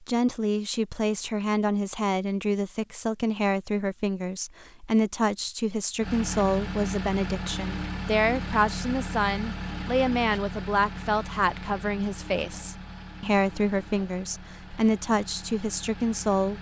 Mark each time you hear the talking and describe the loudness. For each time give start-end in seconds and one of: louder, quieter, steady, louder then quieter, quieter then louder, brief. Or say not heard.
0.0-16.5 steady.